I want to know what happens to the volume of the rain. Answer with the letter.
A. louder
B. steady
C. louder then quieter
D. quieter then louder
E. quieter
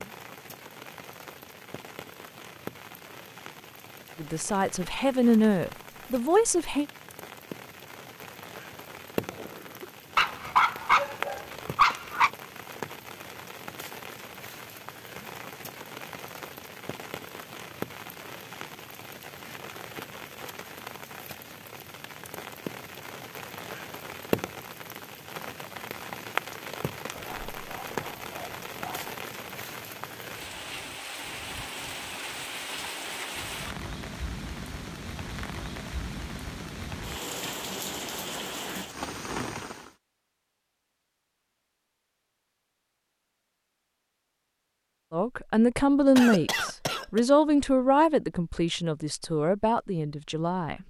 A.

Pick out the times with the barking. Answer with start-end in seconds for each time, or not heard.
10.2-12.3, 27.1-29.1.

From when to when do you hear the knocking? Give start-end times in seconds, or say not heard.
not heard.